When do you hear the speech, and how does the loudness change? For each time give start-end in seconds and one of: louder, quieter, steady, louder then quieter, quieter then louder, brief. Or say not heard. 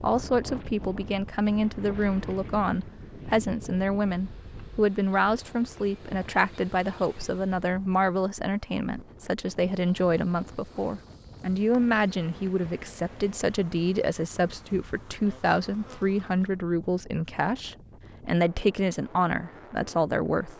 0.0-20.5 steady.